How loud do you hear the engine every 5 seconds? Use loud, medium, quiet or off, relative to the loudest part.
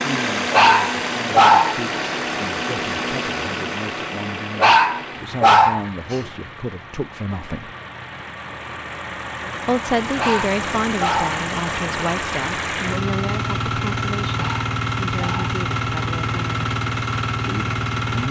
loud, medium, loud, loud.